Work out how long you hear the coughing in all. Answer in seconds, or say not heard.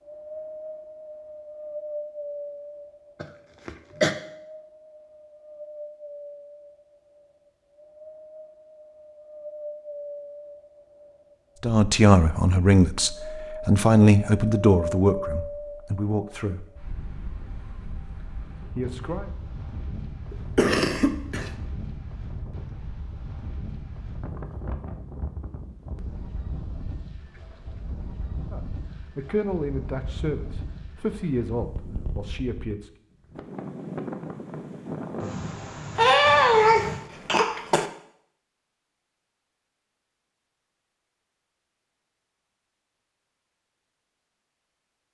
4 s.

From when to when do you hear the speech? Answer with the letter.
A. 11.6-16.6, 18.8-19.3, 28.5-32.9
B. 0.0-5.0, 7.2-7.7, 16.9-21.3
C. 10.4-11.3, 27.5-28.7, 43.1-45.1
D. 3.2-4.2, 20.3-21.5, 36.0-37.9
A.